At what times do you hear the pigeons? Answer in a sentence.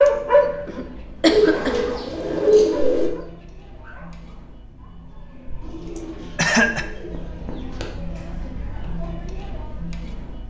The pigeons can be heard from 1.2 to 3.1 s and from 5.6 to 7.8 s.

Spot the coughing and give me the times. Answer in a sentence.
You can hear the coughing from 0.7 to 1.9 s and from 6.0 to 6.8 s.